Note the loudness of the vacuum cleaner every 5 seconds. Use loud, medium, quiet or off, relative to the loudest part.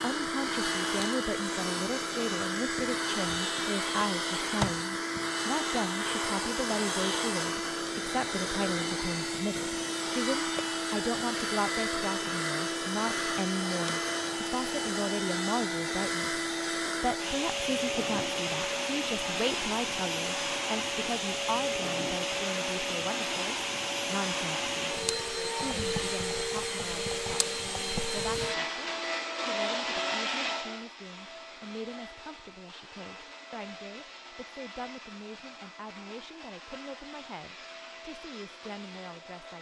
loud, loud, loud, loud, loud, loud, medium, quiet.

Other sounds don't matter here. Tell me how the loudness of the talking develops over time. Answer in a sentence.
The loudness of the talking goes down.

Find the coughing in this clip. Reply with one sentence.
The coughing can't be heard in this clip.